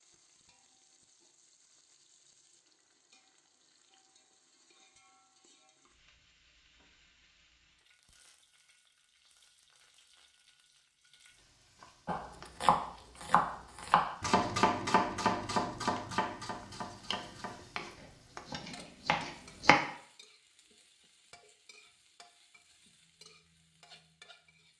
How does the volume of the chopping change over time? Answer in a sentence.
The loudness of the chopping goes down, then up.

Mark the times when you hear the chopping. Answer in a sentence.
You can hear the chopping from 12.1 to 19.8 s.